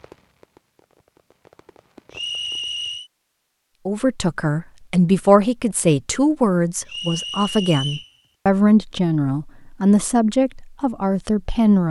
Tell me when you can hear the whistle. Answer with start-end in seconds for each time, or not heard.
2.1-3.1, 6.8-8.1.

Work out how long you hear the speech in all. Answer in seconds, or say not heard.
8 s.